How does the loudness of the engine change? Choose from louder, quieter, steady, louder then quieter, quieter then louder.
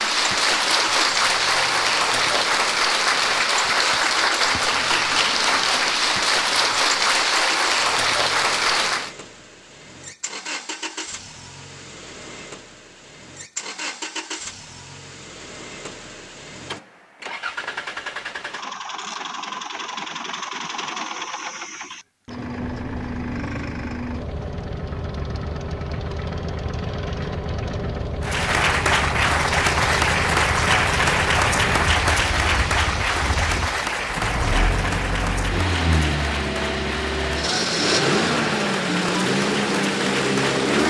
louder.